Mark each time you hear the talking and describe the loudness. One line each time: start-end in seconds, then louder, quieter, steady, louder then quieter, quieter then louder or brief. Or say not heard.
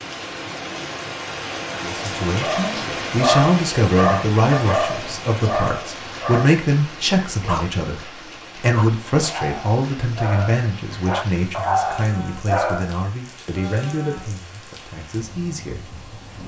1.8-16.0 quieter.